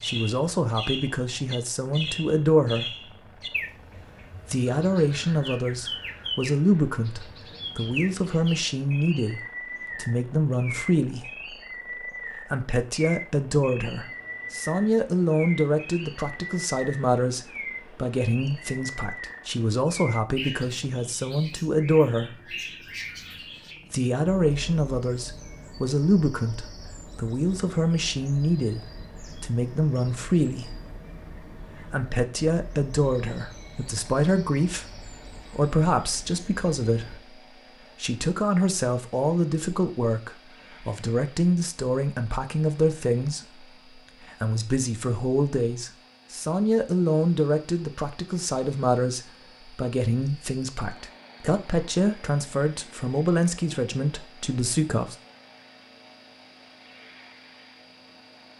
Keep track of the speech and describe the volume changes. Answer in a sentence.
The loudness of the speech stays about the same.